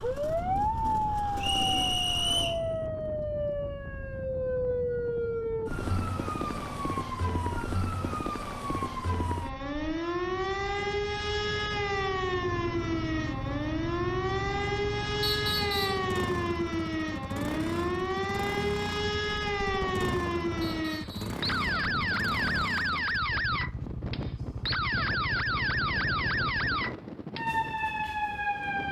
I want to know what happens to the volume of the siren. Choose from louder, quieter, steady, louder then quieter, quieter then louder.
steady.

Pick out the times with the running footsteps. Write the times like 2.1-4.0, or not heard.
not heard.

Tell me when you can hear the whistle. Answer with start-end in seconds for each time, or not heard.
1.4-2.6, 15.2-16.1, 20.6-21.4.